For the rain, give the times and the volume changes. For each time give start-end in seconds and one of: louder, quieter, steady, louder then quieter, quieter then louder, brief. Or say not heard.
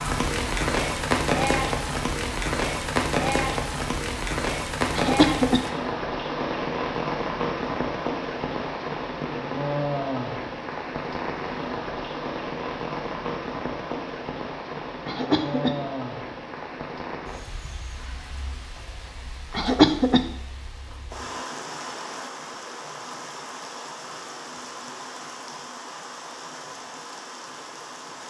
0.0-28.2 quieter.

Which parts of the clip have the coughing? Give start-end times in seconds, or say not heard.
4.9-5.7, 15.1-15.8, 19.6-20.2.